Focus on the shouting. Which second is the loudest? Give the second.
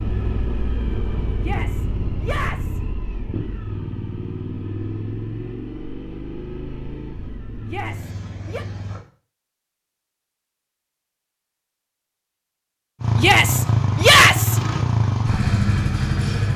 14 s.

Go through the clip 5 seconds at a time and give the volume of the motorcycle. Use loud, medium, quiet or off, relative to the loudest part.
medium, quiet, loud, loud.